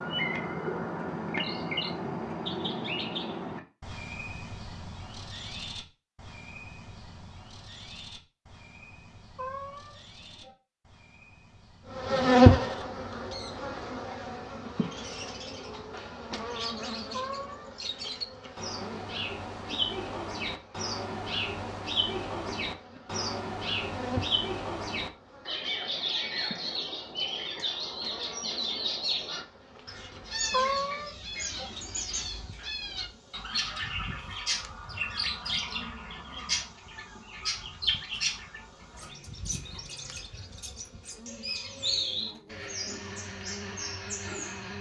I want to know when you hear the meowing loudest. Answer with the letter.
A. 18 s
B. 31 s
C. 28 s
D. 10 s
B.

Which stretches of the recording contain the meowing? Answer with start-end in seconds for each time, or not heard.
9.3-10.5, 17.1-17.7, 30.5-31.7.